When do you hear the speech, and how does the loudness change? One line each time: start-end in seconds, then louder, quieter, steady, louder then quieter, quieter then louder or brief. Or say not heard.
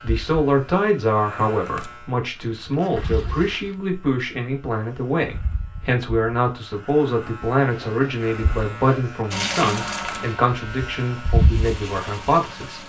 0.0-12.8 steady.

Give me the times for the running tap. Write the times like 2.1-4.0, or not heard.
9.3-12.8.